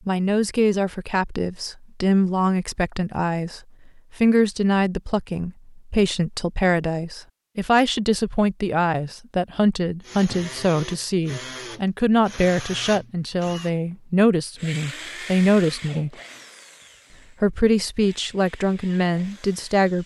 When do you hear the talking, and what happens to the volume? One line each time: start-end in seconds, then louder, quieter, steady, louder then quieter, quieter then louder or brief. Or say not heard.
0.1-16.1 steady
17.4-20.0 brief.